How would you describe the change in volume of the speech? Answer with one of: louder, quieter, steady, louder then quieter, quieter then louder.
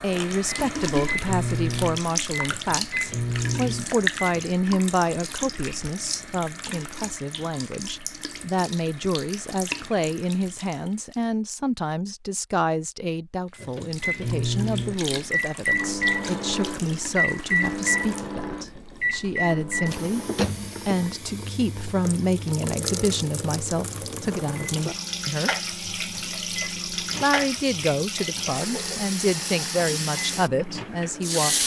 steady.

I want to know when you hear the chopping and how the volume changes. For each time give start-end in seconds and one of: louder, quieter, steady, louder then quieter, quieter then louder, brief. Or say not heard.
not heard.